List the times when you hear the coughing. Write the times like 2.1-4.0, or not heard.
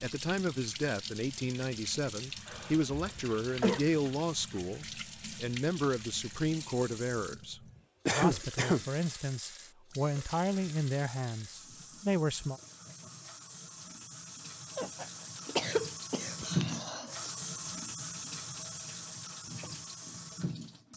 2.5-3.9, 8.1-8.8, 14.8-17.4.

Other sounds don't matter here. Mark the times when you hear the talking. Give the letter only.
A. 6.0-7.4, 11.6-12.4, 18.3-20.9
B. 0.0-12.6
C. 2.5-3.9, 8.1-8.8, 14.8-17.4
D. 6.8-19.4
B.